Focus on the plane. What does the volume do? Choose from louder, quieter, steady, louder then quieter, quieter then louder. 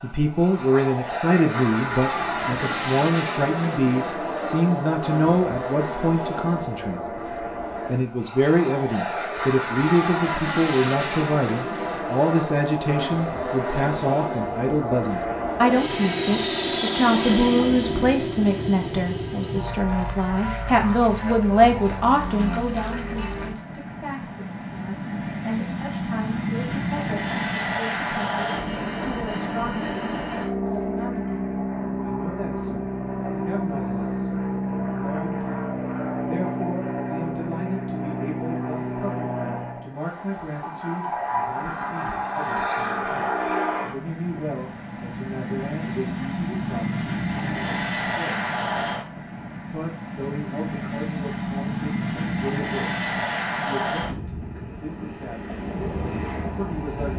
steady.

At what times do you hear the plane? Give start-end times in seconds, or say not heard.
0.0-57.1.